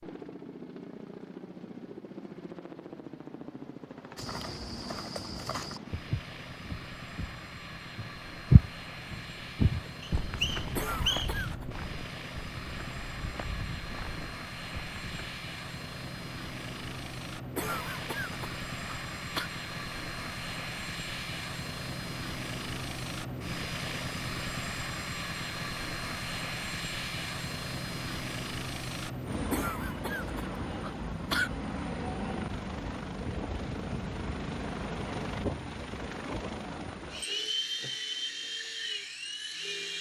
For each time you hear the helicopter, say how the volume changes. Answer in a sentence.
The helicopter can be heard from 0.0 to 39.9 s, getting louder.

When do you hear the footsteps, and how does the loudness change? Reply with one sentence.
You can hear the footsteps from 4.2 to 15.3 s, getting louder then quieter.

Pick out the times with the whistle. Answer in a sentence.
You can hear the whistle from 10.0 to 11.4 s.